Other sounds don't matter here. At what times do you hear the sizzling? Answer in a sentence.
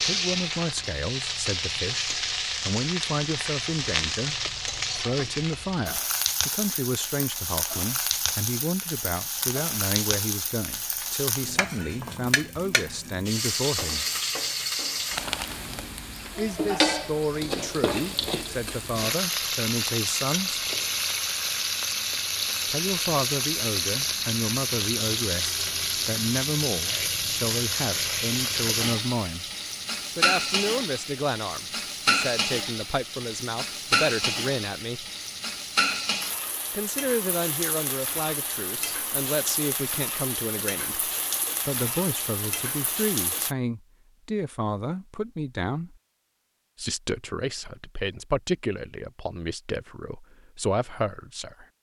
You can hear the sizzling from 0.0 to 43.5 s.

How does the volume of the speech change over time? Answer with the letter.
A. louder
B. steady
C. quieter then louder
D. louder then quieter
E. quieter
B.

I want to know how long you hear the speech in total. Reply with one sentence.
You can hear the speech for 44 seconds altogether.